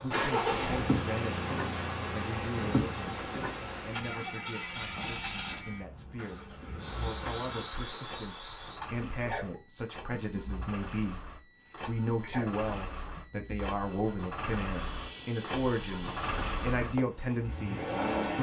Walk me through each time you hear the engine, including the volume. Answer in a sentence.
You can hear the engine from 0.1 to 18.3 s, getting quieter then louder.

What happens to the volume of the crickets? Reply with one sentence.
The volume of the crickets goes down.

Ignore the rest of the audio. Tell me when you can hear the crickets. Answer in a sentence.
The crickets can be heard from 0.0 to 18.3 s.